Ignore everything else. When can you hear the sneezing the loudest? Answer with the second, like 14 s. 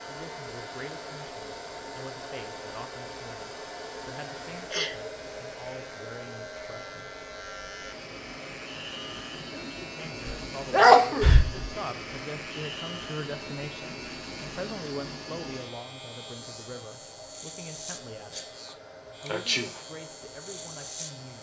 11 s.